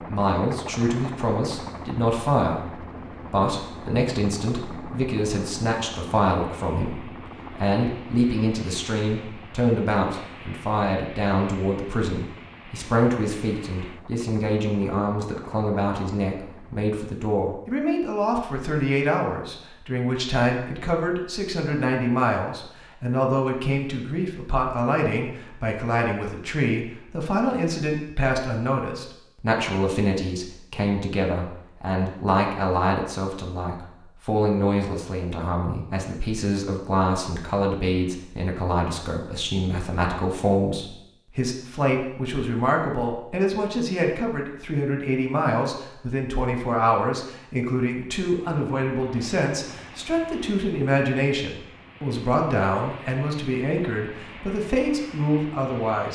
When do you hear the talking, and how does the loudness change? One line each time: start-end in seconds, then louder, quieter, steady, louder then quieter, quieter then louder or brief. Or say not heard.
0.0-56.1 steady.